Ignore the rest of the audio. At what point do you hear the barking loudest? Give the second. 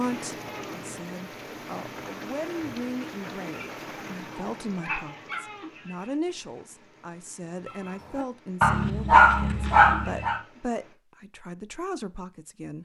9 s.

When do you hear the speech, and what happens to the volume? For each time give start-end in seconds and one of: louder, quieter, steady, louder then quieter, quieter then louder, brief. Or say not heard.
0.0-12.8 steady.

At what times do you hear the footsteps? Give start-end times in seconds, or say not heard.
not heard.